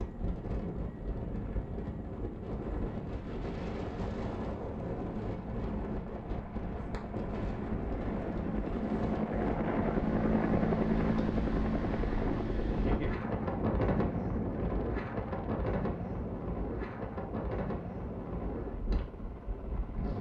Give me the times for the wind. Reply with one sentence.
The wind can be heard from 0.0 to 20.1 s.